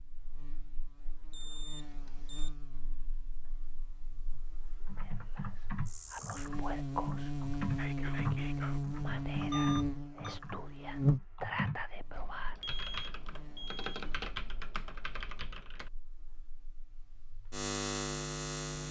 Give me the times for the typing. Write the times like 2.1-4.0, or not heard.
4.3-15.9.